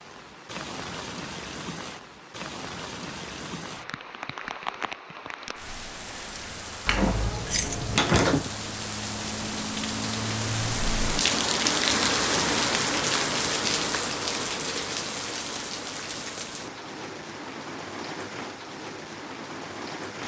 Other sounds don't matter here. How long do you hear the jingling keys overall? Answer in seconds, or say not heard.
2 s.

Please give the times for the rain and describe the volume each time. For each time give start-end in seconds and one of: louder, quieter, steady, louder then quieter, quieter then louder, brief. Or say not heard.
0.0-20.2 louder then quieter.